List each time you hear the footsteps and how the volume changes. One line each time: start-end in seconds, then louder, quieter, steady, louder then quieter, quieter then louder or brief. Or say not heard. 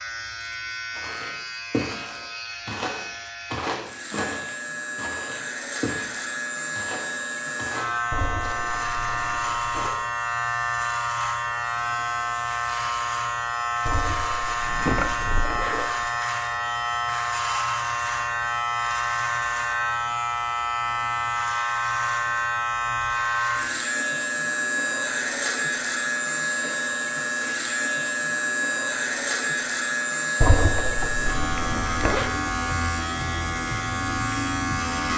0.9-9.3 quieter.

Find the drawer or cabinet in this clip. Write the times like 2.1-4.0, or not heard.
14.6-16.1.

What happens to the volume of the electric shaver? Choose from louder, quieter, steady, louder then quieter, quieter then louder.
louder.